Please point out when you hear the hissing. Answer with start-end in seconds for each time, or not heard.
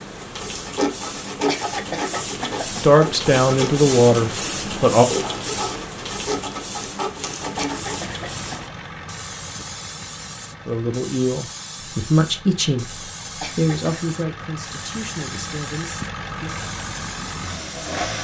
0.0-18.1.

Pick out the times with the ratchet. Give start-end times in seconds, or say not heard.
not heard.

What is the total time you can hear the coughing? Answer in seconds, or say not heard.
3 s.